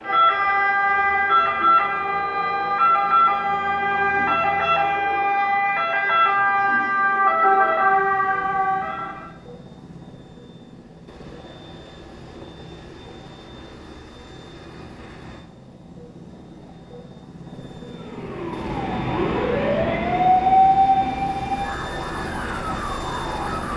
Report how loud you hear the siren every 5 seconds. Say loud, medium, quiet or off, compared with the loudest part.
loud, loud, off, medium, loud.